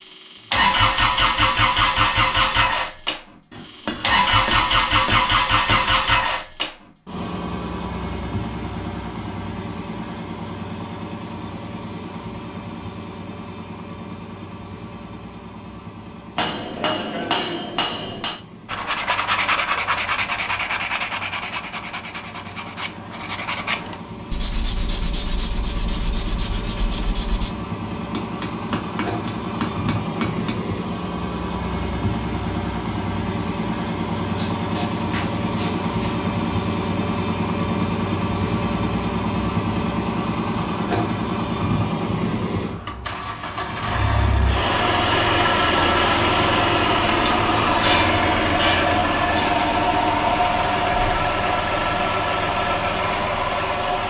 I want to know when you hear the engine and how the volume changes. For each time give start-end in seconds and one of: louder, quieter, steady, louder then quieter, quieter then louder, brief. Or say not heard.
0.0-54.0 quieter then louder.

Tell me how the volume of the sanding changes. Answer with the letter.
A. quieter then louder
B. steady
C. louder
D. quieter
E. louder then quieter
D.